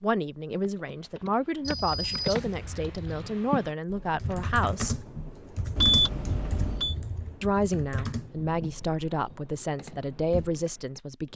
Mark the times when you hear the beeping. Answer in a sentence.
The beeping can be heard from 1.6 to 3.3 s and from 5.8 to 7.0 s.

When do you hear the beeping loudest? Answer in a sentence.
The loudest moment of the beeping is at 6 seconds.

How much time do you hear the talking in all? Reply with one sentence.
The talking can be heard for 9 seconds in total.